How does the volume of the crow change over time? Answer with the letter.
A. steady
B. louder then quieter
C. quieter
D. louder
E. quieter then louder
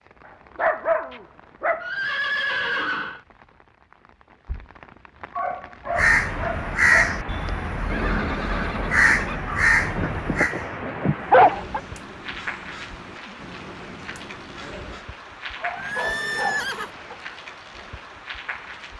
C.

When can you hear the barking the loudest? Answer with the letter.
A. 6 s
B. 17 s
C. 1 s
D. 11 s
D.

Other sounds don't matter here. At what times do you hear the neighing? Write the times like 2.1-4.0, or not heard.
1.8-3.2, 7.8-9.4, 15.8-16.9.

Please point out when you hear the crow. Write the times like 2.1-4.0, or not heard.
5.9-15.1.